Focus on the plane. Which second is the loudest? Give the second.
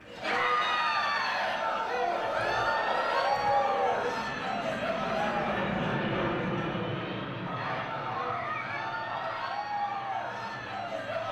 6 s.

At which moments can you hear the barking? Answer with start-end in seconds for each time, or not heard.
2.1-4.2, 7.5-9.4.